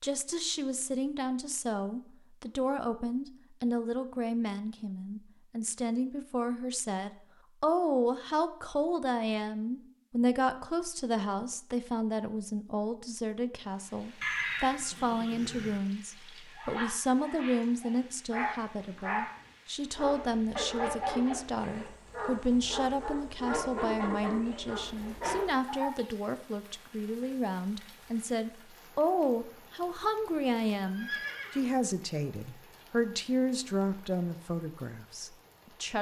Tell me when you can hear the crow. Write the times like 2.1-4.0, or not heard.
not heard.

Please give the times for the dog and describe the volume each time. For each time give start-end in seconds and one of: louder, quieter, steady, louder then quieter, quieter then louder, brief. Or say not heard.
16.4-25.9 steady.